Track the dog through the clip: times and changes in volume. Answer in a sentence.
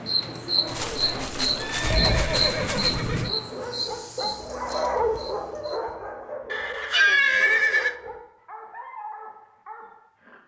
The dog can be heard from 0.5 to 10.4 s, getting louder then quieter.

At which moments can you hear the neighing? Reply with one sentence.
You can hear the neighing from 0.7 to 3.3 s and from 6.5 to 8.0 s.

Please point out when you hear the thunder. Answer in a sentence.
The thunder can be heard from 1.8 to 3.3 s.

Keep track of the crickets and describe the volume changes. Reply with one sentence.
The volume of the crickets goes down.